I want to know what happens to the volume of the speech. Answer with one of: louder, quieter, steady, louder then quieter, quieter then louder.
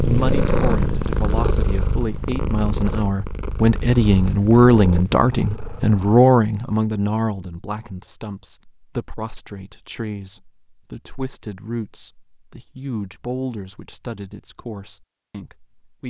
louder then quieter.